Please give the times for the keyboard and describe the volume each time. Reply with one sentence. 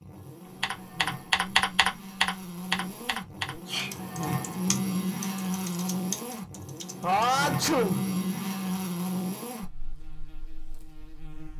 The keyboard can be heard from 0.6 to 7.2 s, getting quieter.